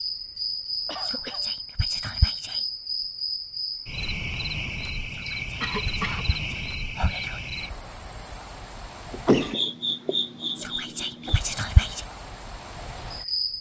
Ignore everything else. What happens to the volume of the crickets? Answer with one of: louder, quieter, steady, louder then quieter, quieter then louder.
quieter.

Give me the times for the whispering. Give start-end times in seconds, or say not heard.
1.1-2.6, 5.1-7.5, 10.6-12.0.